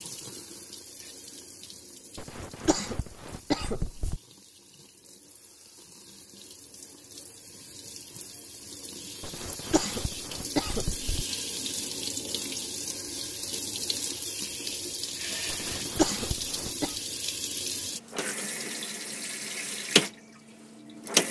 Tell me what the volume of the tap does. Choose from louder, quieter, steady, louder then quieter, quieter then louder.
louder.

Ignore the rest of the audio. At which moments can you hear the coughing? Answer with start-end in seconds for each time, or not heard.
2.1-4.2, 9.2-11.2, 15.4-16.9.